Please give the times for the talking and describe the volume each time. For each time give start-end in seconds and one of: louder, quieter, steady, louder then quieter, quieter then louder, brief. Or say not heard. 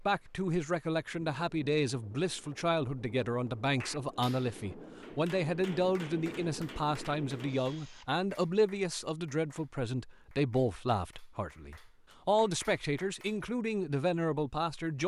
0.0-15.0 steady.